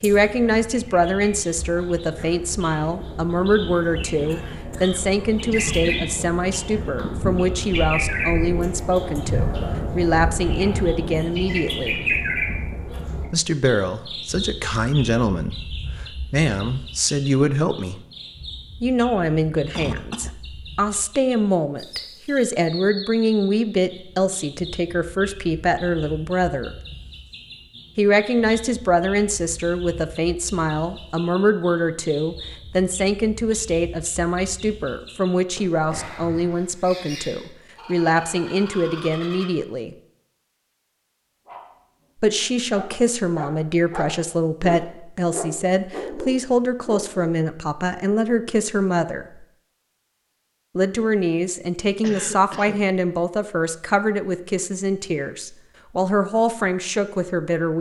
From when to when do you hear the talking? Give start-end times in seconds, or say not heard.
0.0-12.0, 13.3-18.0, 18.8-26.8, 27.9-40.0, 42.2-49.5, 50.8-57.7.